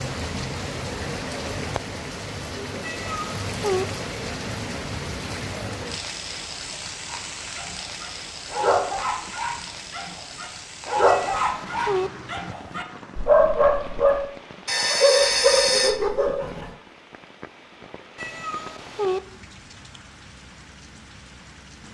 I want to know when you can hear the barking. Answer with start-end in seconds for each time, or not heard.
7.0-16.7.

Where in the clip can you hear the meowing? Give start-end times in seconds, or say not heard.
2.8-3.9, 11.1-12.1, 18.1-19.2.